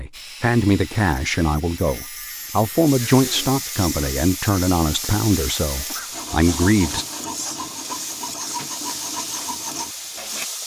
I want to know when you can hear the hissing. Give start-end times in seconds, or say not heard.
2.9-10.6.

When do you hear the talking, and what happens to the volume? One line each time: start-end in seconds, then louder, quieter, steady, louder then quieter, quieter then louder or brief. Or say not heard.
0.0-7.0 steady.